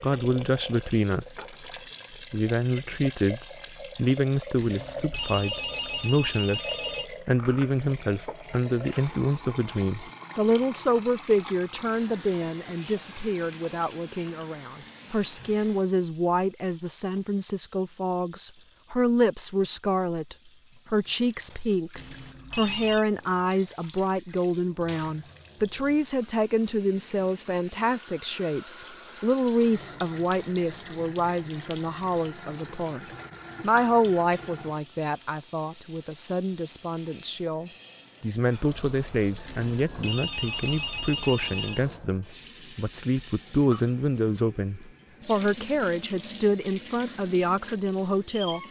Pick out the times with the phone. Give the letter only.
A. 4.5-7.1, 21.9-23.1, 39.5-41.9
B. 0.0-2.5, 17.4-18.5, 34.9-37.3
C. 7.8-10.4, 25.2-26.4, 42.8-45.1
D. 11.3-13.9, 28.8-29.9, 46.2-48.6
A.